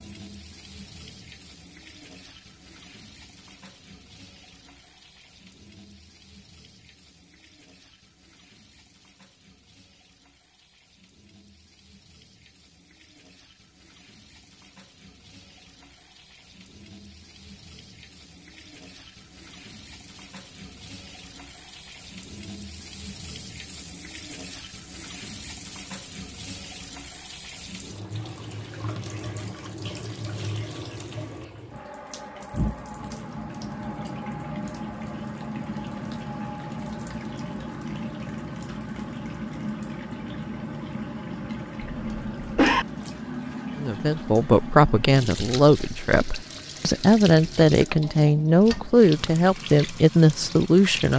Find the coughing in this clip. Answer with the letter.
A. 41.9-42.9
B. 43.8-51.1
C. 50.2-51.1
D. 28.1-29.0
A.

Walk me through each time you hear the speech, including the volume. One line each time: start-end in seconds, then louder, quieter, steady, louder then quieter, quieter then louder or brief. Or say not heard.
43.8-51.1 steady.